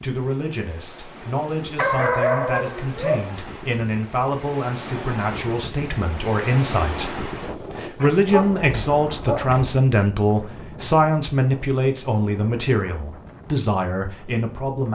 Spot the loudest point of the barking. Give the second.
2 s.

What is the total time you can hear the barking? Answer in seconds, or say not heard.
3 s.